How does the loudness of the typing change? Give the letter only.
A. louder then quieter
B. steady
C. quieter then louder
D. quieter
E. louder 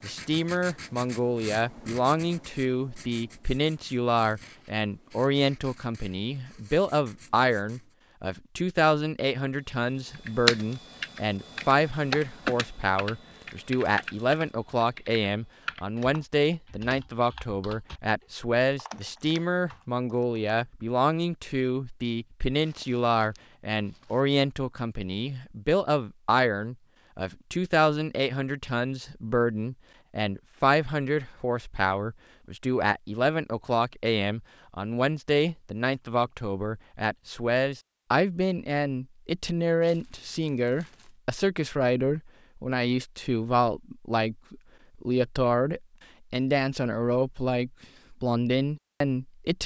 D.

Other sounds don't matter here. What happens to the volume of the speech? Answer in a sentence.
The volume of the speech stays about the same.